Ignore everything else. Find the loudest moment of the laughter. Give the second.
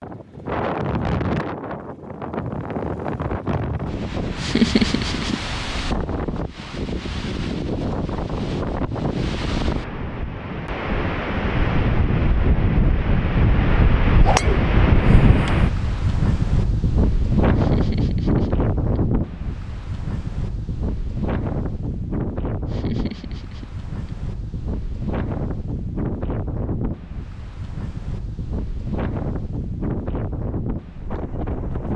5 s.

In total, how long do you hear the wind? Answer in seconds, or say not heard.
32 s.